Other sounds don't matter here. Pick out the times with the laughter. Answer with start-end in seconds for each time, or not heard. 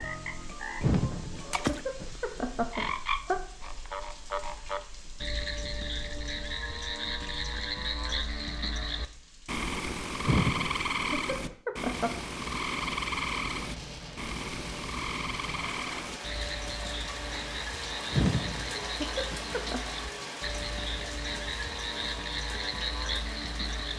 0.8-3.4, 10.2-12.2, 18.1-19.9.